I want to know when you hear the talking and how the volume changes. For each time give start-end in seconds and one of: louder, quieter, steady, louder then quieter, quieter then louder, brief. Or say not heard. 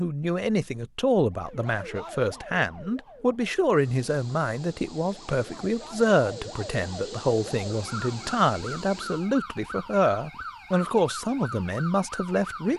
0.0-12.7 steady.